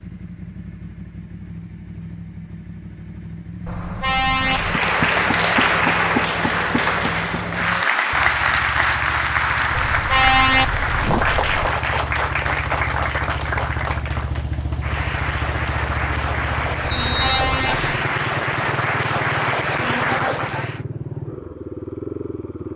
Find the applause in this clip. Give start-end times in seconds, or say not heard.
4.3-20.8.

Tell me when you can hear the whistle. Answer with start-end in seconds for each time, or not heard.
16.9-18.0.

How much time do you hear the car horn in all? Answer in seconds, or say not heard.
4 s.